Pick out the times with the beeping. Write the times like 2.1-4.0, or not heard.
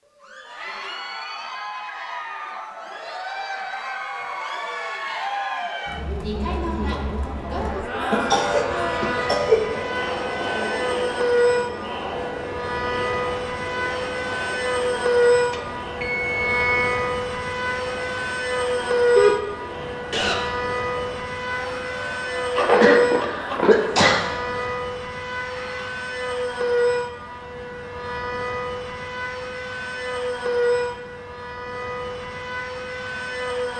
15.5-16.9.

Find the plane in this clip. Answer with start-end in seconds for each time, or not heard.
7.5-33.7.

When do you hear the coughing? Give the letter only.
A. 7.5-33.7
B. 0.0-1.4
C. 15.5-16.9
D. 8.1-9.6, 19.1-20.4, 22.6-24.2
D.